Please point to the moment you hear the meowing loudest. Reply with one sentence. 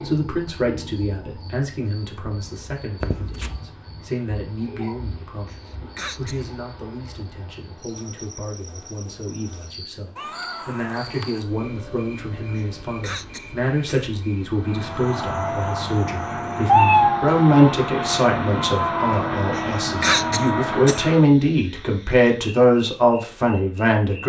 The loudest moment of the meowing is at 17 seconds.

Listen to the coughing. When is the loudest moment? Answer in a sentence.
The volume of the coughing peaks at 20 seconds.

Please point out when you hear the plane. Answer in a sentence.
The plane can be heard from 14.5 to 21.3 s.